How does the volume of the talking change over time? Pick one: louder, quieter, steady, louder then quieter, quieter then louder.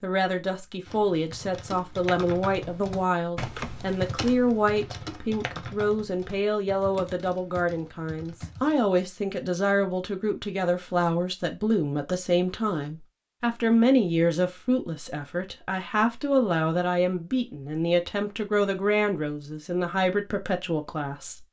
steady.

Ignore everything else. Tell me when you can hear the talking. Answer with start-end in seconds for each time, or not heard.
0.0-21.4.